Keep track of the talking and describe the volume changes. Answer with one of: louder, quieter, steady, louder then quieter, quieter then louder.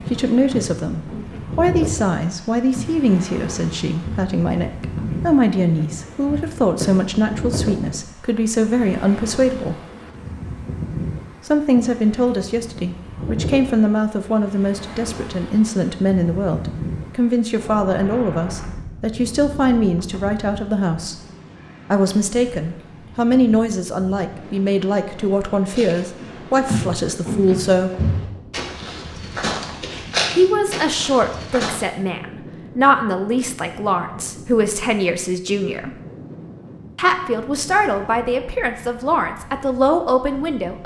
steady.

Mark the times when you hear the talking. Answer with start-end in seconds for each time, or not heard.
0.1-9.8, 11.4-21.1, 21.9-27.9, 30.4-36.0, 37.0-40.8.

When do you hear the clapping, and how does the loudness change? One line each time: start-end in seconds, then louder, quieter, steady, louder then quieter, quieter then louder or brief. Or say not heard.
not heard.